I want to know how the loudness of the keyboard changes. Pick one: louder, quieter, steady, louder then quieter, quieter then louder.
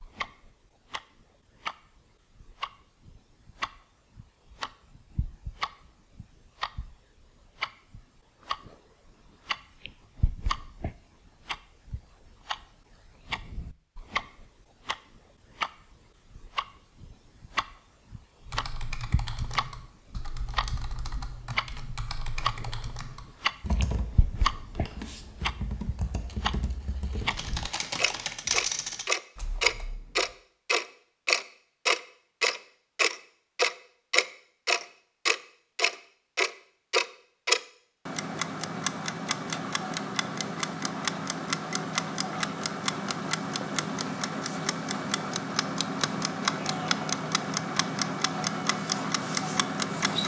louder.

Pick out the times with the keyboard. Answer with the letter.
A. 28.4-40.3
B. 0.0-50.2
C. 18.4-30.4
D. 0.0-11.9
C.